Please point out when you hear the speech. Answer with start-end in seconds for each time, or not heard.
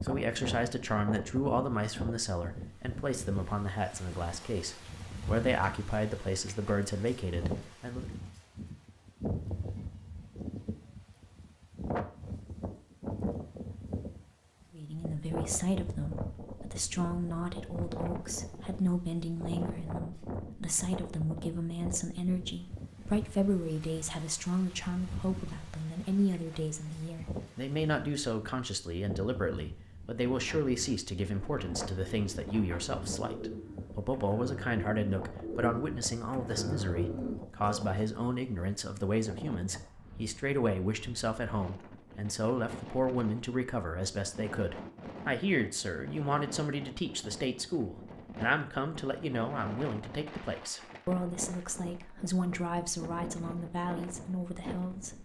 0.0-8.1, 14.7-55.1.